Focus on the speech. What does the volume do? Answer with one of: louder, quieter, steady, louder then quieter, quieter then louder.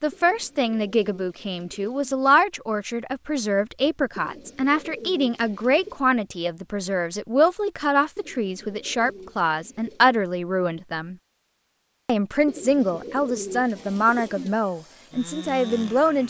steady.